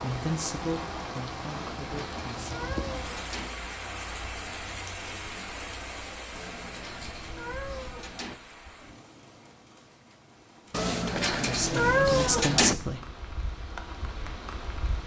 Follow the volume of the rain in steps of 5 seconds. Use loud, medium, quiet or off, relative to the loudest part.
loud, medium, medium.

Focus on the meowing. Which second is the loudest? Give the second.
12 s.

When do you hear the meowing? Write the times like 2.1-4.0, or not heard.
1.4-3.5, 6.3-8.3, 10.7-12.8.